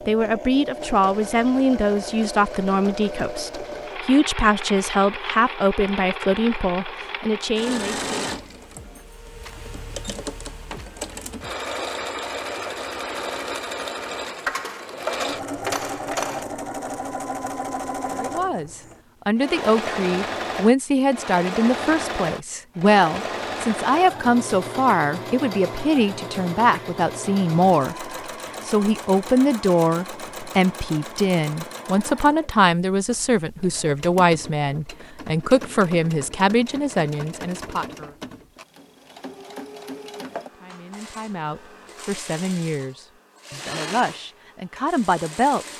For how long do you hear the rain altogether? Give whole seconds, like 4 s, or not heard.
not heard.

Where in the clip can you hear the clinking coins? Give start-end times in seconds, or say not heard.
14.4-16.4.